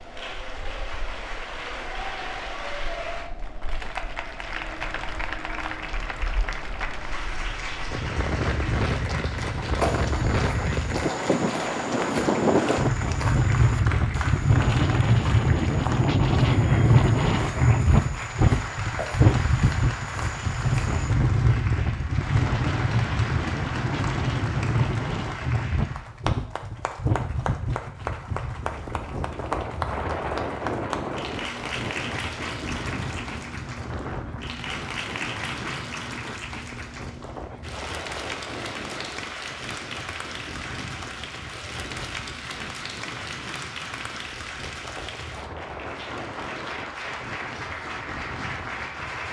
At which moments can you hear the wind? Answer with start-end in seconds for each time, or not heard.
0.0-49.2.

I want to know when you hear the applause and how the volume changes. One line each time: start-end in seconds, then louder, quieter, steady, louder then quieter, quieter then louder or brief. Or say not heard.
0.0-49.2 steady.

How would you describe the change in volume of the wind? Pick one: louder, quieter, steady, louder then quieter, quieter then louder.
louder then quieter.